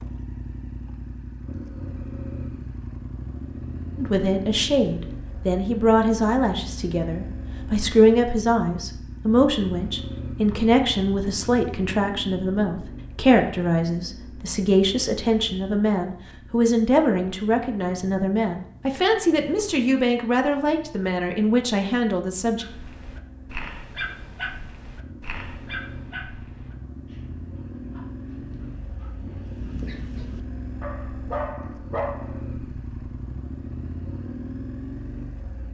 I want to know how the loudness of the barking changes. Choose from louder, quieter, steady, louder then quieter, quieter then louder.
quieter then louder.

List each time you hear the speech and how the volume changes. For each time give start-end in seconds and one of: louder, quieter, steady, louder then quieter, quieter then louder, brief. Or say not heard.
4.0-22.6 steady.